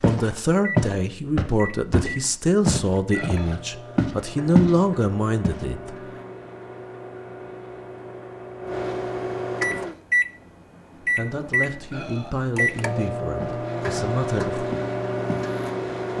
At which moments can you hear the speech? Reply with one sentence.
The speech can be heard from 0.0 to 6.0 s and from 11.0 to 14.7 s.